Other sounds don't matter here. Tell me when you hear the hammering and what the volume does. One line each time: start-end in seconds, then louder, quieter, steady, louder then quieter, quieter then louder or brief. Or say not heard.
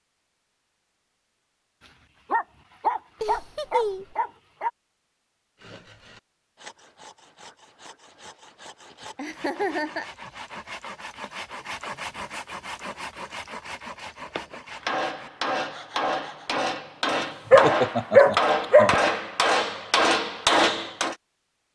14.3-21.1 louder.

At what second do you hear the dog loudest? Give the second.
18 s.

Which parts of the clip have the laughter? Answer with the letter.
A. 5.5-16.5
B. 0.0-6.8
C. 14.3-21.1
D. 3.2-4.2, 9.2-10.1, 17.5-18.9
D.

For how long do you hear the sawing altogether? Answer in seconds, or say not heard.
11 s.